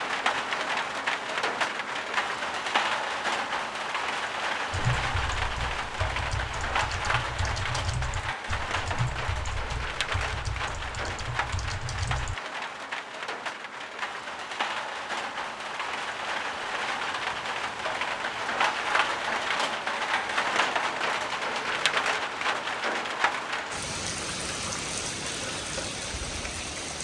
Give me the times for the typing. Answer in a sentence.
You can hear the typing from 4.7 to 12.3 s.